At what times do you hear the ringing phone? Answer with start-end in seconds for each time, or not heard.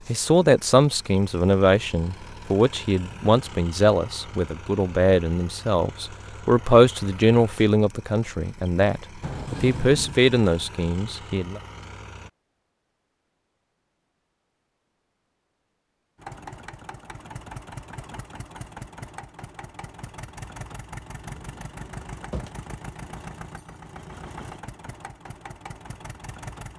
not heard.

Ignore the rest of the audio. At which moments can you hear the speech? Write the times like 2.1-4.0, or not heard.
0.1-11.6.